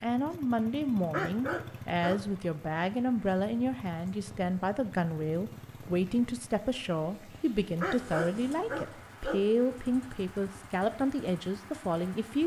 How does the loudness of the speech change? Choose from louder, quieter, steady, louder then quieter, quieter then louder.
steady.